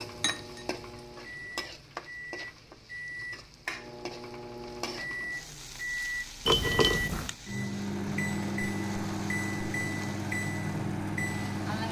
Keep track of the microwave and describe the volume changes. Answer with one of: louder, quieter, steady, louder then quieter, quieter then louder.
louder.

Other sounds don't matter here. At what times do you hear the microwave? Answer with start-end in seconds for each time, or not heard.
0.0-11.8.